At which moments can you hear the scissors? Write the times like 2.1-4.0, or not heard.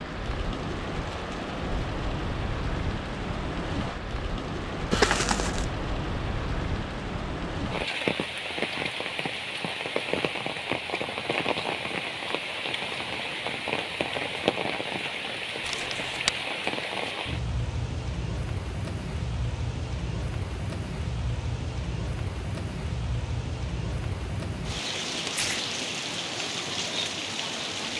not heard.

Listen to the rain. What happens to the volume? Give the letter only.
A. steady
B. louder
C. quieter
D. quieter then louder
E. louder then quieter
A.